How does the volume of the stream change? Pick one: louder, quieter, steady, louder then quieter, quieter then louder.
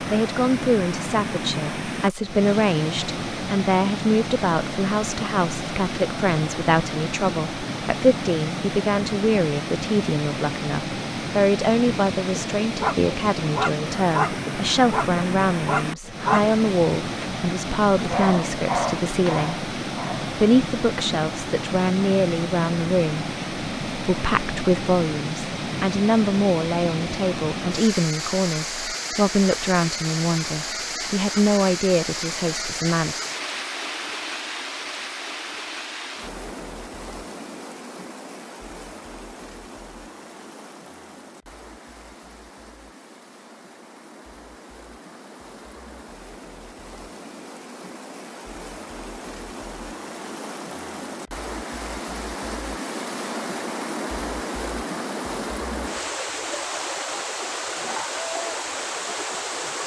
quieter then louder.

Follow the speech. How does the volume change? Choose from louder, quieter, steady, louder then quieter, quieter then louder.
steady.